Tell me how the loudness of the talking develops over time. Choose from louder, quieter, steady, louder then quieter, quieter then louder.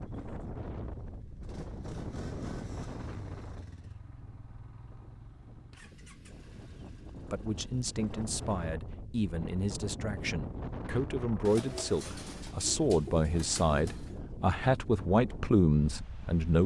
louder.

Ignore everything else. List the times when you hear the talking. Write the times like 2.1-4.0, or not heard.
7.2-16.6.